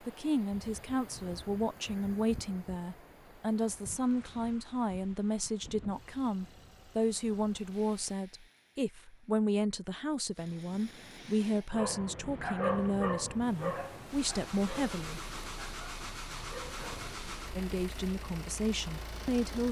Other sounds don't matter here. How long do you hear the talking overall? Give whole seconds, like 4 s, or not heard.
17 s.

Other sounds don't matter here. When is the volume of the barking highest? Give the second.
13 s.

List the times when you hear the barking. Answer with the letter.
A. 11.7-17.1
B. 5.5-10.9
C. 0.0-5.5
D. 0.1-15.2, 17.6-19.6
A.